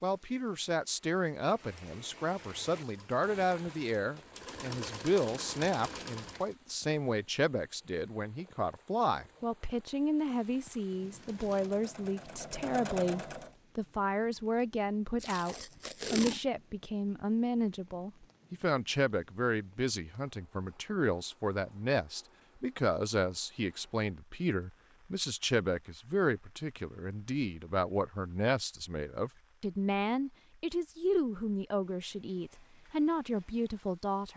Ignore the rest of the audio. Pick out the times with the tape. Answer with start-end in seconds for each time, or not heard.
15.2-16.4.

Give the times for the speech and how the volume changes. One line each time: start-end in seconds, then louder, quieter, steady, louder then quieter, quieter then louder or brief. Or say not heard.
0.0-34.3 steady.